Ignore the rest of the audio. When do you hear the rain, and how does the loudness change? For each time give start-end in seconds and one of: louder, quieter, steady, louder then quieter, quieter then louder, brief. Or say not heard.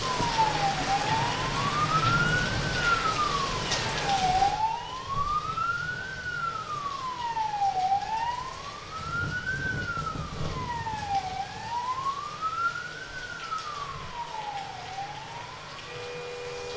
0.0-16.7 quieter.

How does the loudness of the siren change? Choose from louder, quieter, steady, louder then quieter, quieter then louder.
quieter.